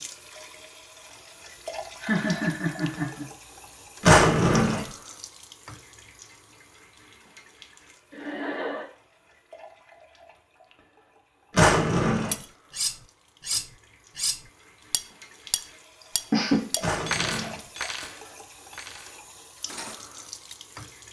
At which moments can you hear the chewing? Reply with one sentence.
You can't hear the chewing here.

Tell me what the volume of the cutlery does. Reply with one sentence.
The loudness of the cutlery goes down.